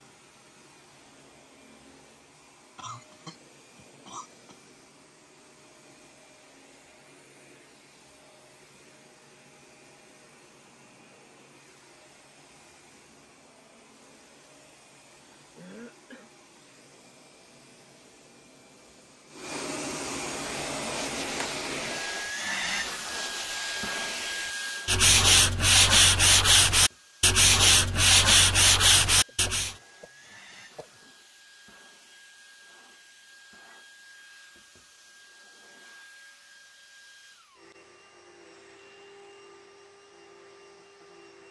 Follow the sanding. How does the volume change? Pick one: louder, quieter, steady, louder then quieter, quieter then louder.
louder.